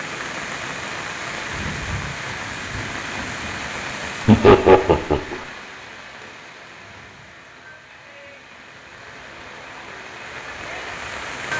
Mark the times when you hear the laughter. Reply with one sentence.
The laughter can be heard from 4.2 to 5.3 s.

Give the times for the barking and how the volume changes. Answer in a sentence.
The barking can't be heard in this clip.